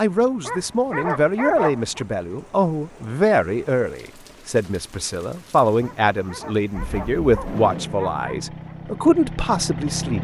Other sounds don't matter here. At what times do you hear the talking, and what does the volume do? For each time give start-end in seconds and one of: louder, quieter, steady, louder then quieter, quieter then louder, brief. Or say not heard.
0.0-10.2 steady.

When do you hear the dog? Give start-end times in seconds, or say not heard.
0.5-2.0, 5.8-8.8.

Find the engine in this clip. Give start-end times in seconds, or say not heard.
6.7-10.2.